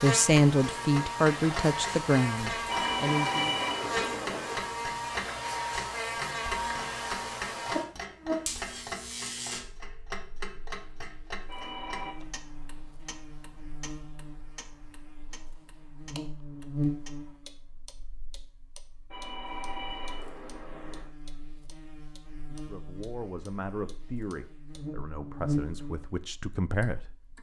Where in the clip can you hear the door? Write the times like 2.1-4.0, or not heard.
not heard.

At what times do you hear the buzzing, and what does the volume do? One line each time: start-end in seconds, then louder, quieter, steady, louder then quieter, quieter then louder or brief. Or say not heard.
0.0-27.3 quieter then louder.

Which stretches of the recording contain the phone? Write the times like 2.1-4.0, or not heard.
2.6-4.7, 11.4-12.2, 19.1-21.1.